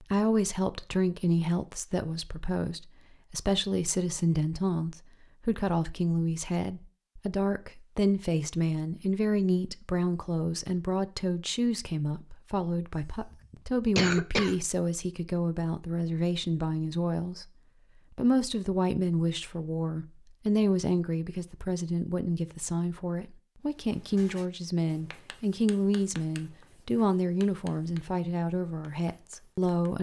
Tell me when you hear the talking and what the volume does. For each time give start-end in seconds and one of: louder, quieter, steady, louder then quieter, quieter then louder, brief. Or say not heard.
0.0-29.9 steady.